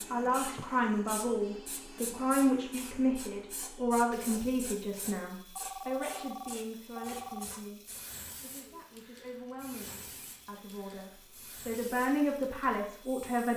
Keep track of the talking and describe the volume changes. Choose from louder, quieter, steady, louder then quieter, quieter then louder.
quieter then louder.